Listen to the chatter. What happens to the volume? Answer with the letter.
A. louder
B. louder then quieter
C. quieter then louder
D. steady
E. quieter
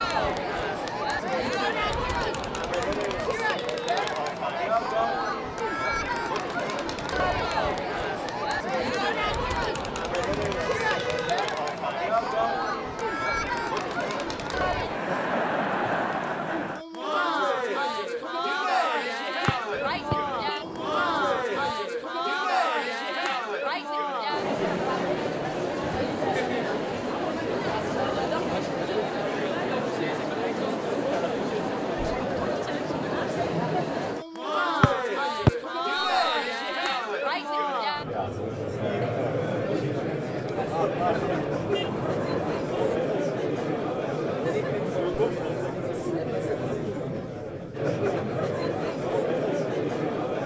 D.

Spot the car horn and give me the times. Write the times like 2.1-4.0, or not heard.
10.2-11.3, 19.7-21.8, 41.0-43.0.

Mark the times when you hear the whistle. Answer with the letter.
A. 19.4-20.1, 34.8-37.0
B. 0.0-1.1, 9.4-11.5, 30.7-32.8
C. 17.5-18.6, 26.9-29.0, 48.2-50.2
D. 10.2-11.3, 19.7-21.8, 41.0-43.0
A.